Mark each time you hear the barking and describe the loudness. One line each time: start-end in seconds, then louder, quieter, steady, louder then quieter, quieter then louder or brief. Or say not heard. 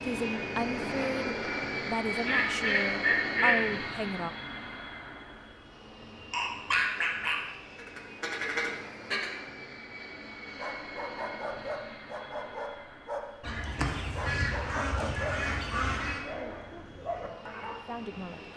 10.6-17.8 steady.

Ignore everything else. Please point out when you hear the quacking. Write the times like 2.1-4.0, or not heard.
2.1-3.6, 6.3-9.3, 13.4-16.2.